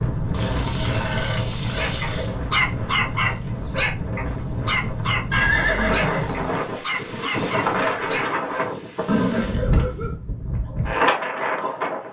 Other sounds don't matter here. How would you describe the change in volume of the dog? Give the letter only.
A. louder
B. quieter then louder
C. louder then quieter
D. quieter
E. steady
D.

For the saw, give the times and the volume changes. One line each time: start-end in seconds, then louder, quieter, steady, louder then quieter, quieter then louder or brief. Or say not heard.
not heard.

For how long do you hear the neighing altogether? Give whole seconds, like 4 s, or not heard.
4 s.